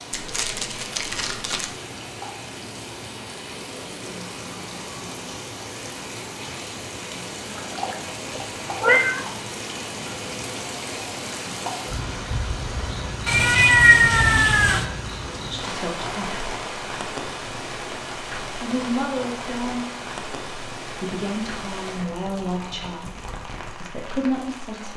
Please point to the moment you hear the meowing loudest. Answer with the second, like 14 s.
14 s.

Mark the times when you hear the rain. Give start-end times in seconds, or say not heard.
0.0-24.9.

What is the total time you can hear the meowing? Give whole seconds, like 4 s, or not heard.
3 s.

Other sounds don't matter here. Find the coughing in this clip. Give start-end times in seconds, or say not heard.
not heard.